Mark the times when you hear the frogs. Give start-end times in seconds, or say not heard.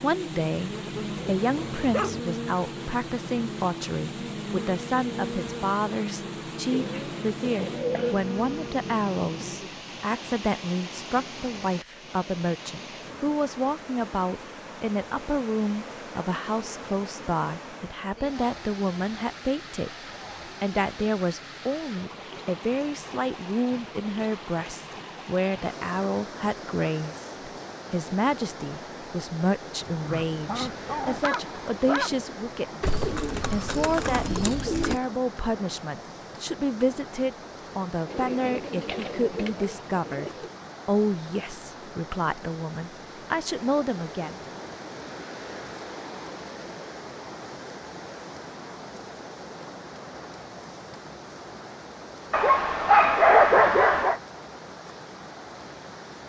not heard.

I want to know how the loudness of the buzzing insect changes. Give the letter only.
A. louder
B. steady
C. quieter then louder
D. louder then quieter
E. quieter
B.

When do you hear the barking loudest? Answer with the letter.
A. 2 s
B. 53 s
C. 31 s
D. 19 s
B.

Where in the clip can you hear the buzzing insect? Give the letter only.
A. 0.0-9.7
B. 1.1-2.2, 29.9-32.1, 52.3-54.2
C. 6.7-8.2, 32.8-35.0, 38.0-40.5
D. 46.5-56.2
A.